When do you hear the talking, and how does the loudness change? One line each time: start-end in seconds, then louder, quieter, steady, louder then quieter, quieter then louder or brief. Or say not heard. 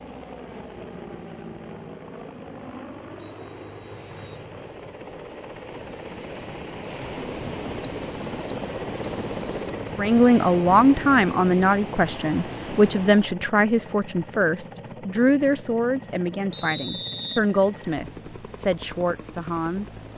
9.9-19.9 quieter.